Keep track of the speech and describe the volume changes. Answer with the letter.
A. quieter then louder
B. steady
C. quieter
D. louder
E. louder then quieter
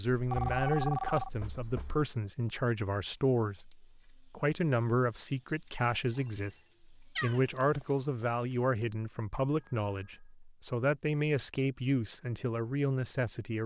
B.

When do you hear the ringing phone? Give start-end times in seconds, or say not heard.
0.3-1.3, 6.0-6.8, 9.5-10.3.